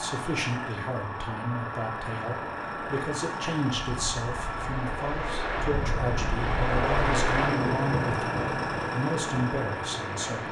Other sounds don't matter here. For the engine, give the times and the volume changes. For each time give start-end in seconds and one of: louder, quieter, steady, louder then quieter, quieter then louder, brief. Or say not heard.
0.0-10.4 steady.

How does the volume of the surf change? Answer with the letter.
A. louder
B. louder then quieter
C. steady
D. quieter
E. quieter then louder
B.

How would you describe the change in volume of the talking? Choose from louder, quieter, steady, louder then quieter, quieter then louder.
steady.